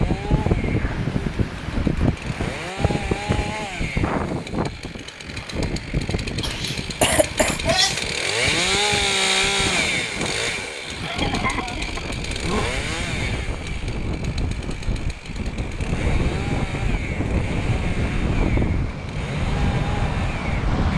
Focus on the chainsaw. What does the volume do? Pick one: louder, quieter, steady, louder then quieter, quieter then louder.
louder then quieter.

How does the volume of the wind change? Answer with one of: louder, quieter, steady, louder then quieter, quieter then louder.
quieter then louder.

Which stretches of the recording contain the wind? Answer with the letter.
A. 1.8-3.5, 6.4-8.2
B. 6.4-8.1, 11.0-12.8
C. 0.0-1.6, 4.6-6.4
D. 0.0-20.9
D.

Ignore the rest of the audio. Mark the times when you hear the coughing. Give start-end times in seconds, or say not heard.
6.4-8.1, 11.0-12.8.